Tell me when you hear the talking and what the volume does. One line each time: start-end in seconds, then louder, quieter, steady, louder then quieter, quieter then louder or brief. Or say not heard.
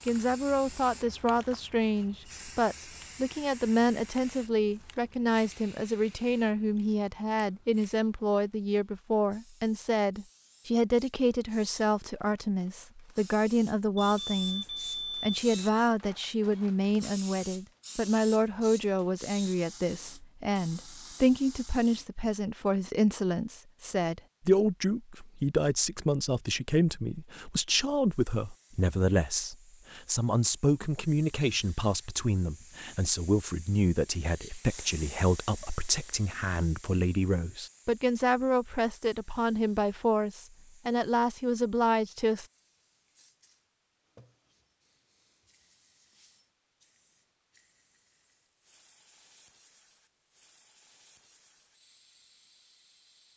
0.1-42.5 steady.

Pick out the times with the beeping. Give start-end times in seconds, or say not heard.
13.9-15.8.